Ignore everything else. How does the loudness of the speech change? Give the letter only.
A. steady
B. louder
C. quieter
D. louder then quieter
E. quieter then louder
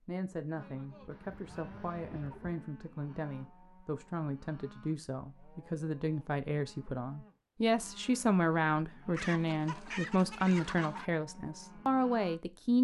B.